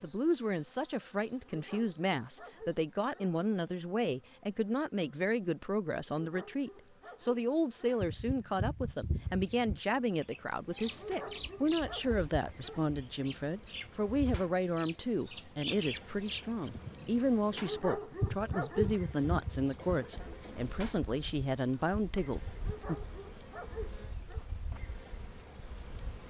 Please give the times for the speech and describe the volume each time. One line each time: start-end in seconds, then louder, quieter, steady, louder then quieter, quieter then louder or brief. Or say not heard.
0.0-22.9 steady.